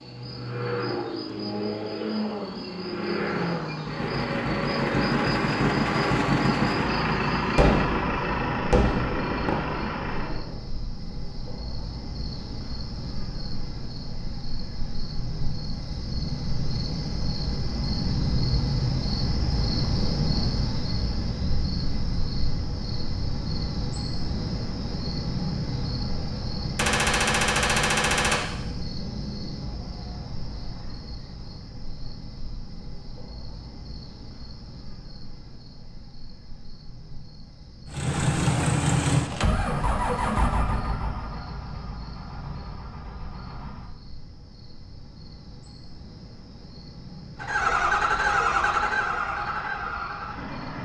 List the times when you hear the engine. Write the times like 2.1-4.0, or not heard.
0.0-10.4, 37.9-44.0, 47.4-50.8.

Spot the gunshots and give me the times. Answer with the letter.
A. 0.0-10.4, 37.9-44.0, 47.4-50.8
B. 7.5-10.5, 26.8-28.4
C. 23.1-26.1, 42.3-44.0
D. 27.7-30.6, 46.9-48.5
B.